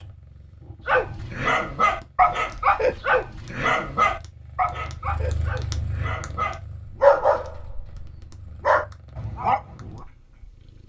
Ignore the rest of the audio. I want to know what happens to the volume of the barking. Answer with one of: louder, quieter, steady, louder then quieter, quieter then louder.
quieter then louder.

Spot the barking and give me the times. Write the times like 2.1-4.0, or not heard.
0.8-10.0.